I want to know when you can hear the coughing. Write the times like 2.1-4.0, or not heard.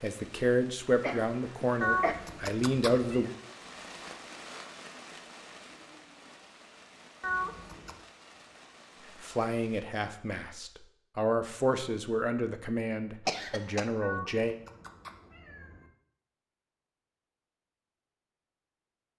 1.0-2.1, 13.2-13.8.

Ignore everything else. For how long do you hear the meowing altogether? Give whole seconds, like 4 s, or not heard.
4 s.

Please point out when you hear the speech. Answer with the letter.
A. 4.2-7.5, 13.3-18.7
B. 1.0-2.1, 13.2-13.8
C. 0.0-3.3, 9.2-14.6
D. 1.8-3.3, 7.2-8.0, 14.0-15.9
C.